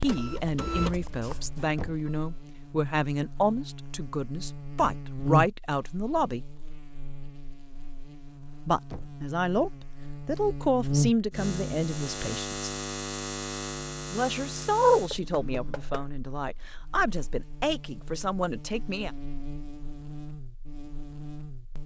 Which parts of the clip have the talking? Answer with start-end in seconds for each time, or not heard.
0.0-6.4, 8.7-12.7, 14.1-19.1.